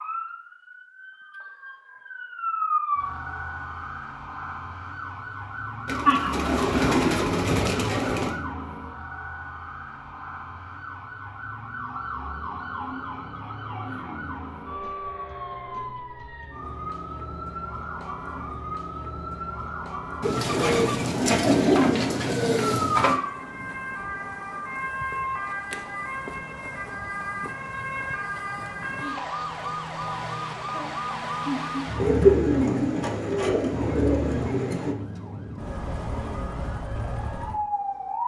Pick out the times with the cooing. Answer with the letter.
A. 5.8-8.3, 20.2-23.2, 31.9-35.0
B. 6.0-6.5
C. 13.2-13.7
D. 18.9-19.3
A.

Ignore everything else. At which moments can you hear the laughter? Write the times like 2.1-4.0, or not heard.
6.0-6.5.